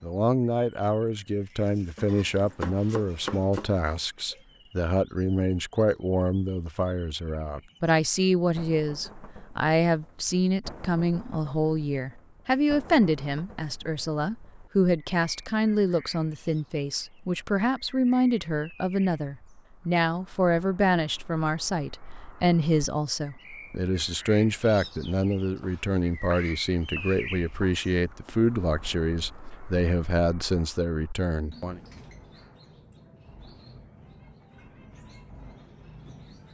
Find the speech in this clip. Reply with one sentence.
The speech can be heard from 0.0 to 31.8 s.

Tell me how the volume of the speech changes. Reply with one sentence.
The loudness of the speech stays about the same.